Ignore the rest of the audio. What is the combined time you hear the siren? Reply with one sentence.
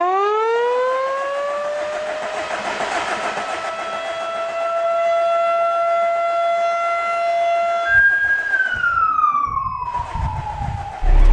You can hear the siren for 11 seconds altogether.